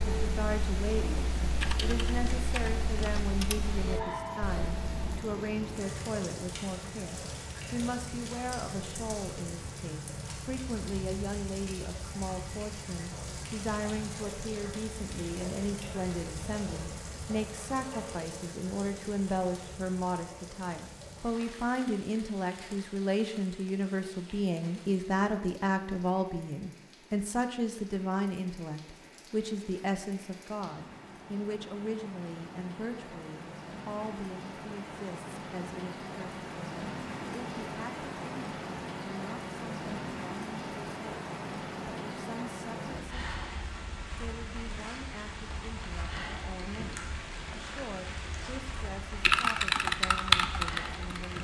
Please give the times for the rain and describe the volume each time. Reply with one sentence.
You can hear the rain from 0.0 to 51.3 s, getting quieter then louder.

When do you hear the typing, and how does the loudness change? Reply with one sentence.
The typing can be heard from 0.0 to 5.2 s, getting louder then quieter; and briefly from 49.2 to 51.3 s.